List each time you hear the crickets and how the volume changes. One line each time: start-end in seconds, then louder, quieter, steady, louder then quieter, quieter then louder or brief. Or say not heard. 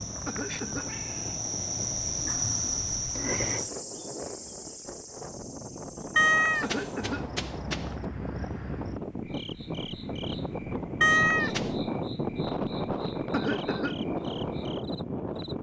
0.0-15.5 quieter.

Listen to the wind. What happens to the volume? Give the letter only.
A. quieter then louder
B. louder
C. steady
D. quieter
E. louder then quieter
B.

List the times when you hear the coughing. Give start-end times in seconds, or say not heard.
0.2-0.9, 6.6-7.3, 13.3-14.1.